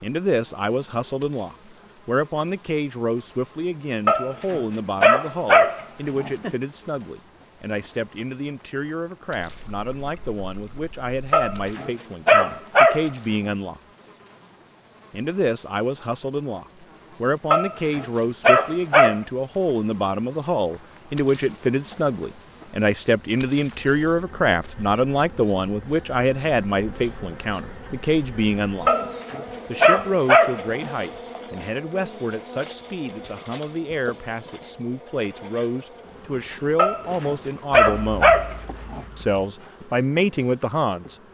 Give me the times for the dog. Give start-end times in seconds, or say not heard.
4.0-6.5, 11.3-13.1, 17.5-19.2, 28.9-30.6, 36.8-39.0.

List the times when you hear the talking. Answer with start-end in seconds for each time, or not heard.
0.0-13.8, 15.1-28.9, 29.6-38.4, 39.1-41.1.